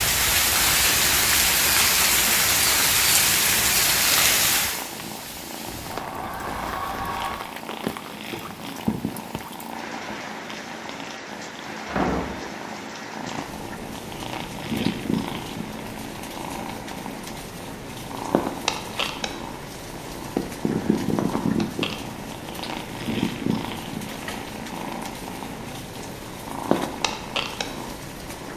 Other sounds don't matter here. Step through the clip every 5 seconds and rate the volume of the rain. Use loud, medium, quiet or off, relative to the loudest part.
loud, quiet, quiet, quiet, quiet, quiet.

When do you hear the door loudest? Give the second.
12 s.